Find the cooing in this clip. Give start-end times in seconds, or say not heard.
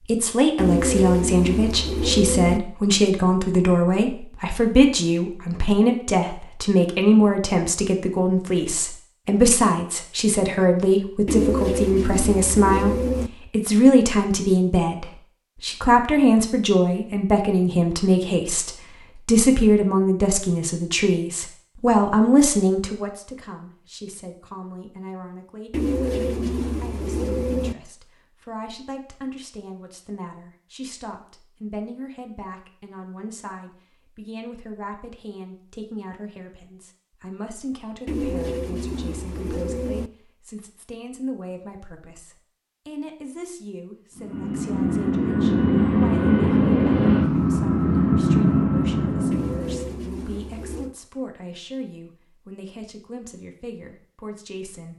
0.6-2.6, 11.2-13.3, 25.7-27.8, 38.0-40.1, 49.3-51.0.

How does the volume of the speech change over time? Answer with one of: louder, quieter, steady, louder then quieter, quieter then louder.
quieter.